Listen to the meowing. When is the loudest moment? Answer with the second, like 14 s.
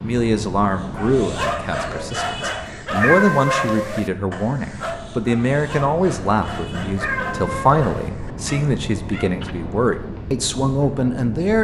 3 s.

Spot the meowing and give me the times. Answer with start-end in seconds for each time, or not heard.
3.0-4.1, 7.0-8.1.